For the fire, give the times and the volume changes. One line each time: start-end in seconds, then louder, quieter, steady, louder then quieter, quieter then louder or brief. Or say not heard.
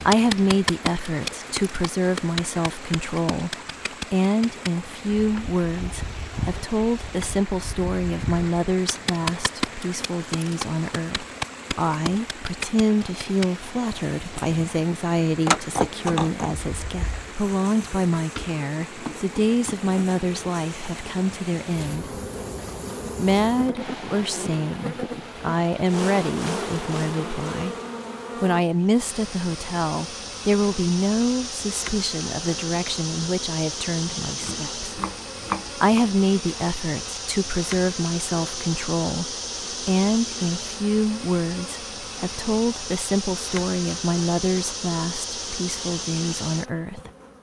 not heard.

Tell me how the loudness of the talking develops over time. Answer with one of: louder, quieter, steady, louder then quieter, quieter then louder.
steady.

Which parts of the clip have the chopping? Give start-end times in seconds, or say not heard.
18.1-19.9, 34.4-36.0.